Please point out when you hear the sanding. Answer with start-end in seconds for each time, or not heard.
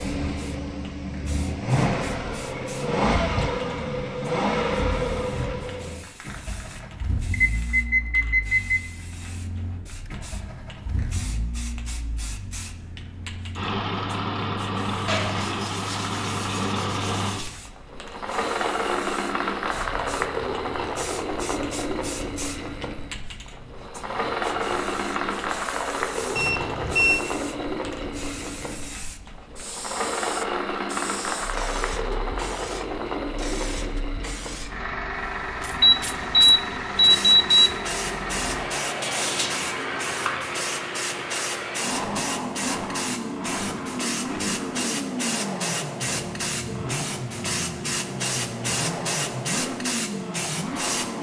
15.1-17.5, 39.0-40.5.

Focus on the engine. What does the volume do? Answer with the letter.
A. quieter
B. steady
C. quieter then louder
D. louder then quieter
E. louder
B.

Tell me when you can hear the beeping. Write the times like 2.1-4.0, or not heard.
7.3-8.8, 26.4-27.2, 35.8-37.5.